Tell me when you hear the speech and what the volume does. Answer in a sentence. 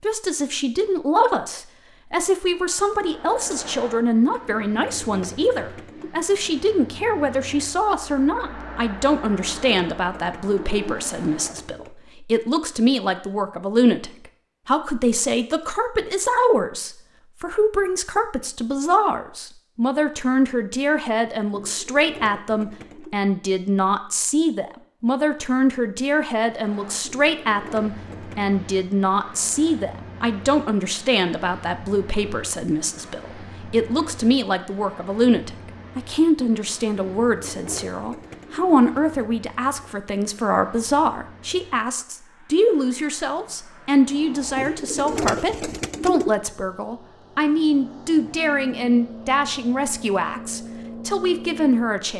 The speech can be heard from 0.0 to 52.1 s, at a steady volume.